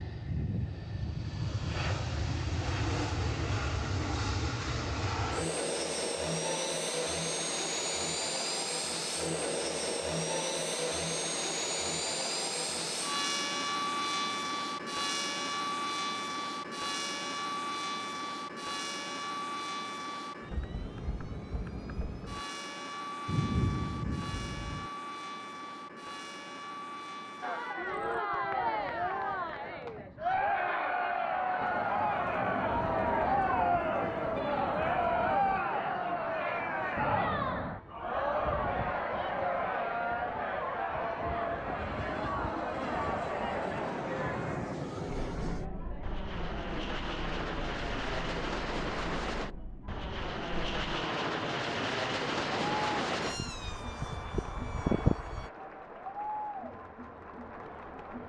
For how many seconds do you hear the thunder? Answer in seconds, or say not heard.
6 s.